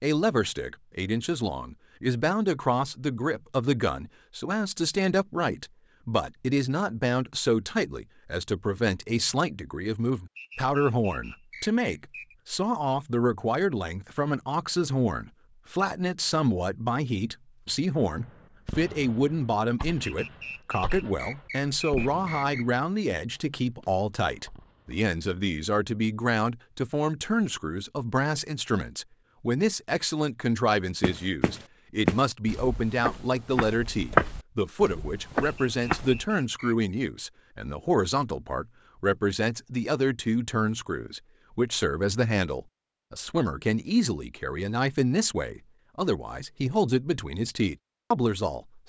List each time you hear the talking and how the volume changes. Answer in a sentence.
You can hear the talking from 0.0 to 48.8 s, at a steady volume.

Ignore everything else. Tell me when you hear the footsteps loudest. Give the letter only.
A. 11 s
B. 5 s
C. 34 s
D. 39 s
C.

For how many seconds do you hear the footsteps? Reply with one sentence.
The footsteps can be heard for 5 seconds in total.